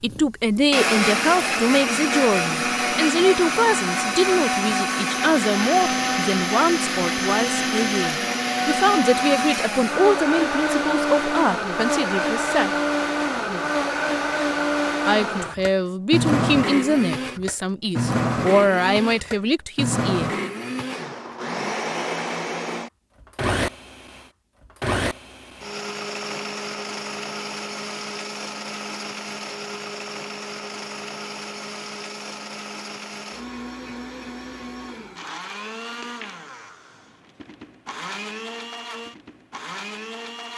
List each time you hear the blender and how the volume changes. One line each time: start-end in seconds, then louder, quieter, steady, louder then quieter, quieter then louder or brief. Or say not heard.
0.1-40.5 quieter.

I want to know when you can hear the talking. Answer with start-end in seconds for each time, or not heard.
0.0-12.8, 15.1-20.4.